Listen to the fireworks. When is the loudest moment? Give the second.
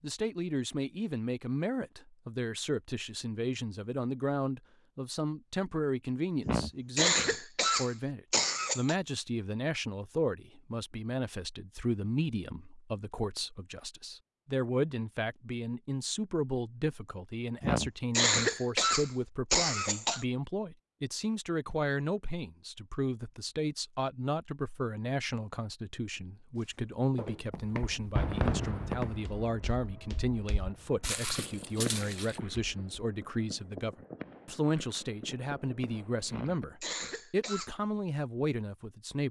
28 s.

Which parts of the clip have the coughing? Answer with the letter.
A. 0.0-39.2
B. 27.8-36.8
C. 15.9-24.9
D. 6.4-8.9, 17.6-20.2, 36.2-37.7
D.